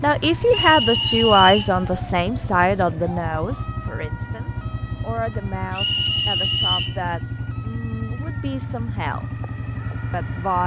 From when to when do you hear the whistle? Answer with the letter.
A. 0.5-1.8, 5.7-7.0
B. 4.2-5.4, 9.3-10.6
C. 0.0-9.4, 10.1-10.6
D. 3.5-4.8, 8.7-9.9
A.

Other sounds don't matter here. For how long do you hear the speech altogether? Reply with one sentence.
The speech can be heard for 10 seconds in total.